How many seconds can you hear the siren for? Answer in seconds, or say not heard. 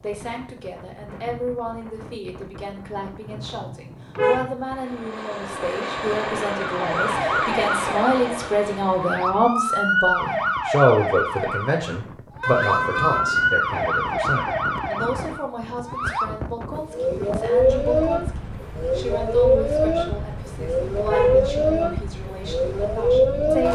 17 s.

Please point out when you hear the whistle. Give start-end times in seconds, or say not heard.
not heard.